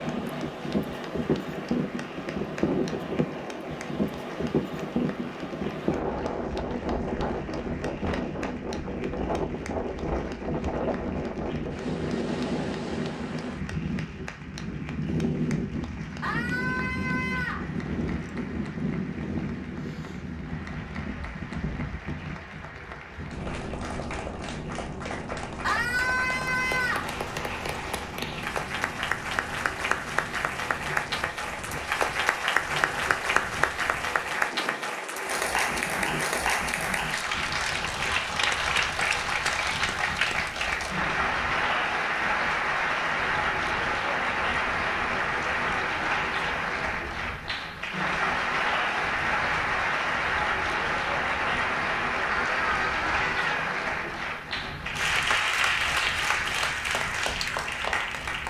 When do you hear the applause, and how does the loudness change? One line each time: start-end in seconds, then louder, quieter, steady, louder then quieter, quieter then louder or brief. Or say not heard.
0.0-58.4 louder.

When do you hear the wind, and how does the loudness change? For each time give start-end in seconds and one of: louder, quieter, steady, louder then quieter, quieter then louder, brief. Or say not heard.
0.0-58.4 quieter.